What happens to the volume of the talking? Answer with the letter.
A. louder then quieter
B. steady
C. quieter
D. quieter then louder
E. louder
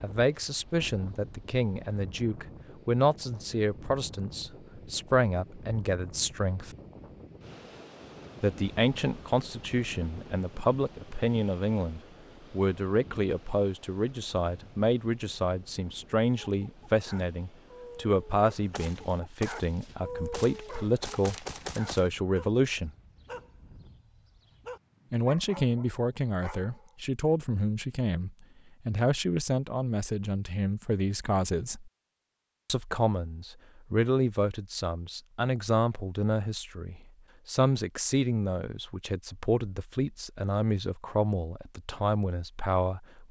B.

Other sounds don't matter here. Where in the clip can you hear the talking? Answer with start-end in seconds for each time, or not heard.
0.0-6.8, 8.4-22.9, 25.1-31.9, 32.6-43.2.